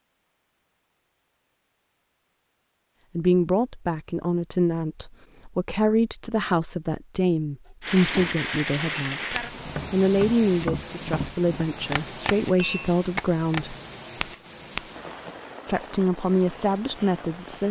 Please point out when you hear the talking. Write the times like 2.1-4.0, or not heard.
3.1-13.8, 15.7-17.6.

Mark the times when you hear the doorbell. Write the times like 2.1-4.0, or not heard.
not heard.